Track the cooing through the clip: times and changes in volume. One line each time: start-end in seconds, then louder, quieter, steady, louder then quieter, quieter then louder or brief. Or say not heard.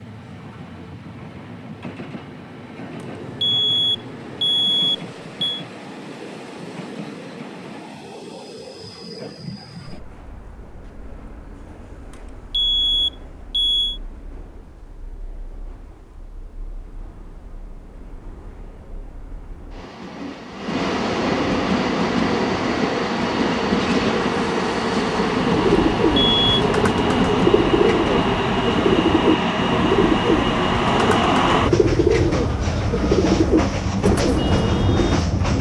25.4-35.1 steady.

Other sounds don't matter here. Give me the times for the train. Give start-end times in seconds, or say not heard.
0.0-35.5.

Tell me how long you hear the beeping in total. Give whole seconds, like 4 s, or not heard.
4 s.